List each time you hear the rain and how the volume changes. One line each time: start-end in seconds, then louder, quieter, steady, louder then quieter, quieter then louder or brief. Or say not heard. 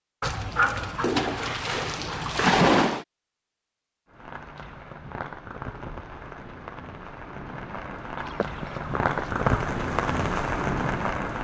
4.1-11.3 louder.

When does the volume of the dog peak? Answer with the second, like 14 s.
3 s.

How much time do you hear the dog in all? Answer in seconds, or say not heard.
4 s.